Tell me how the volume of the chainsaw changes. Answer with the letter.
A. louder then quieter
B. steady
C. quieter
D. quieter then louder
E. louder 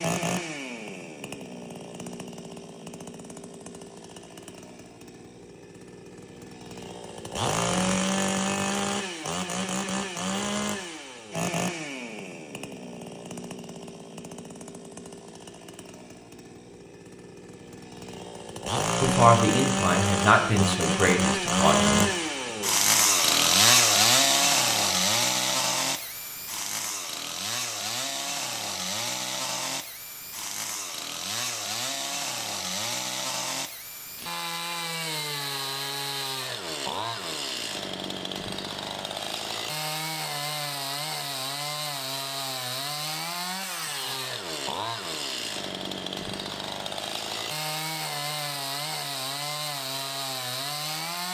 A.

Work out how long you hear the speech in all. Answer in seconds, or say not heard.
3 s.